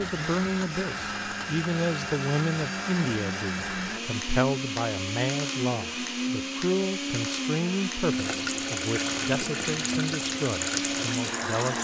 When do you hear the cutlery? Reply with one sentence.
The cutlery can't be heard in this clip.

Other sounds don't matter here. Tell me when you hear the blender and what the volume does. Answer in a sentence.
The blender can be heard from 0.0 to 11.7 s, at a steady volume.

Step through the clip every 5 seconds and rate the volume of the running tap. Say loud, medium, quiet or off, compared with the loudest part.
off, loud, loud.